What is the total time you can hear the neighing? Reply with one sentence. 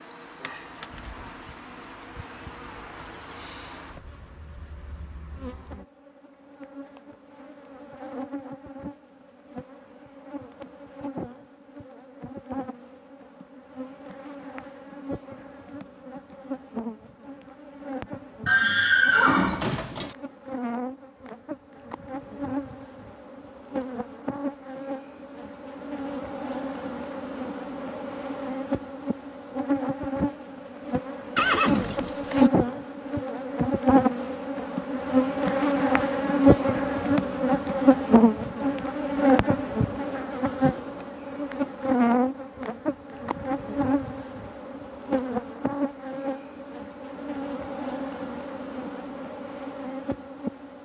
The neighing can be heard for 3 seconds in total.